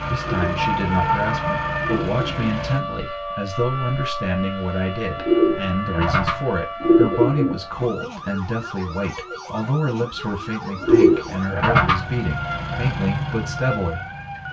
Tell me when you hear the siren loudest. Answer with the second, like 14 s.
1 s.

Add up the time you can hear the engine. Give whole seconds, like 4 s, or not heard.
6 s.